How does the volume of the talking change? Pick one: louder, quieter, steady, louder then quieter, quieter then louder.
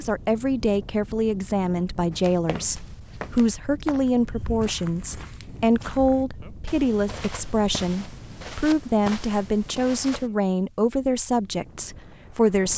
steady.